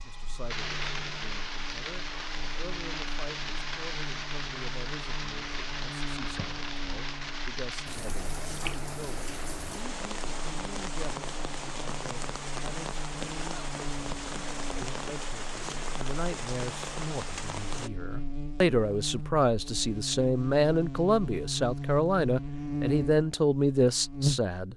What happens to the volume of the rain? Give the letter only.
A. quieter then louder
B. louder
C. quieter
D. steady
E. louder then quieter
D.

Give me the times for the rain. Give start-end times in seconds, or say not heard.
0.0-17.9.